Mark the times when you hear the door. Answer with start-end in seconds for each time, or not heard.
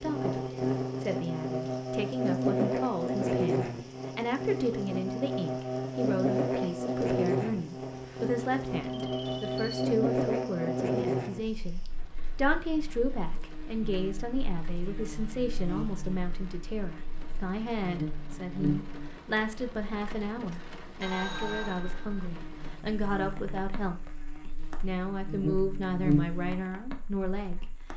not heard.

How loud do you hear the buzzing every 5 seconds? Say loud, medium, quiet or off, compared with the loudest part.
loud, loud, loud, medium, quiet, loud.